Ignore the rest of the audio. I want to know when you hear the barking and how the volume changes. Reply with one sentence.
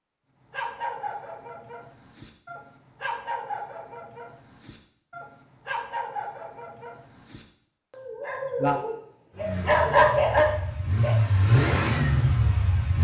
You can hear the barking from 0.5 to 11.2 s, getting louder.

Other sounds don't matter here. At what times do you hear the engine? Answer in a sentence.
The engine can be heard from 9.3 to 12.9 s.